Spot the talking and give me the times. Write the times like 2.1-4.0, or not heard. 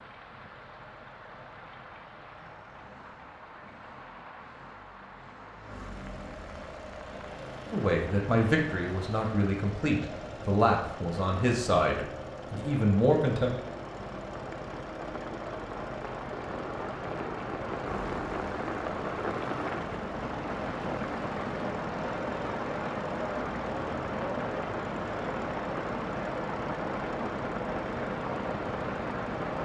7.7-13.6.